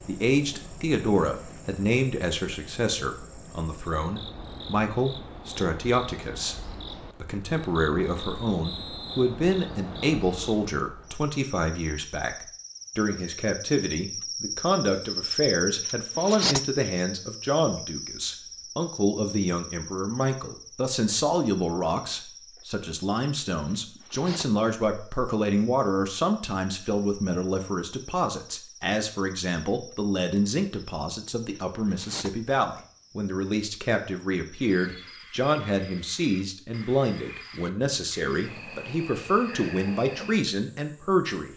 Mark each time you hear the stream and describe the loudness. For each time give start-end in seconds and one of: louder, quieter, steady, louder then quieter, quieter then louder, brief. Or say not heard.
not heard.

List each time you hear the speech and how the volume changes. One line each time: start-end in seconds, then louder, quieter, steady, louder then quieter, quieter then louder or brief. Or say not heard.
0.1-41.5 steady.